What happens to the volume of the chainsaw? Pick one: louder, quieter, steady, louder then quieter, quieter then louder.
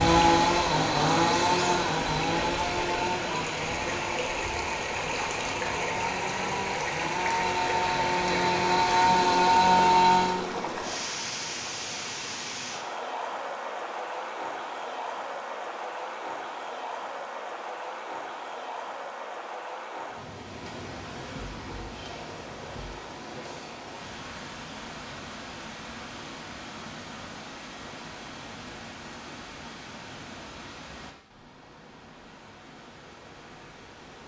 quieter then louder.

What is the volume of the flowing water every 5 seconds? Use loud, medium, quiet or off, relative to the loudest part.
loud, loud, loud, medium, medium, medium, quiet.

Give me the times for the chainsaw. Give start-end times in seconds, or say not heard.
0.0-10.4.